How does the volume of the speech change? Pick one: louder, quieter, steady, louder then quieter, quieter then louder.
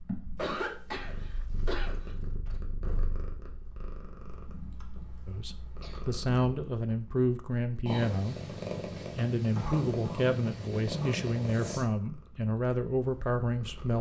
steady.